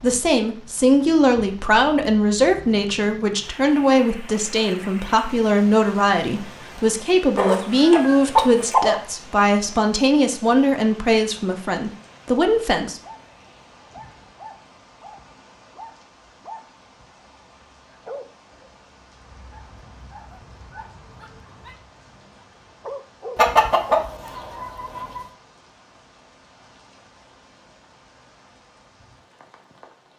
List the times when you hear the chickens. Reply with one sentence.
You can hear the chickens from 7.3 to 9.0 s and from 23.4 to 25.2 s.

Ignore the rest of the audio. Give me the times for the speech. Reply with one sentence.
The speech can be heard from 0.0 to 13.0 s.